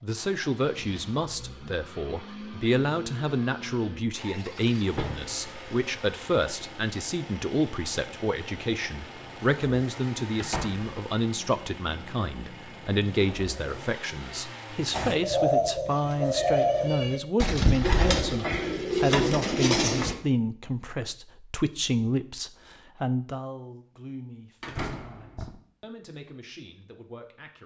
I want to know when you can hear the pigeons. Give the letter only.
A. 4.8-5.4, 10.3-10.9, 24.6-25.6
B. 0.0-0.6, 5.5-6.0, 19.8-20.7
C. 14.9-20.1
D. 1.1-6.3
C.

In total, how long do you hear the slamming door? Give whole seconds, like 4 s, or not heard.
2 s.